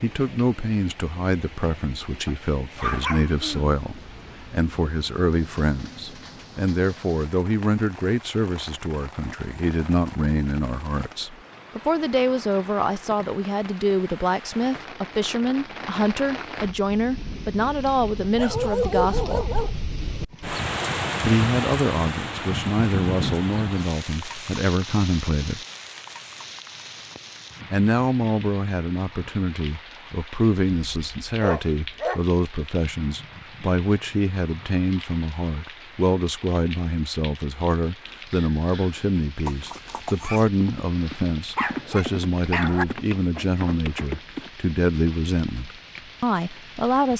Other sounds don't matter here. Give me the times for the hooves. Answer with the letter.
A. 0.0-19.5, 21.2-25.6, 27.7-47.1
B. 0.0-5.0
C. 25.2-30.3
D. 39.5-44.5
D.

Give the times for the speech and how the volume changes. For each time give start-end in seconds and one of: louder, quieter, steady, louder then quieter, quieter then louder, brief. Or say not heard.
0.0-19.5 steady
21.2-25.6 quieter then louder
27.7-47.1 steady.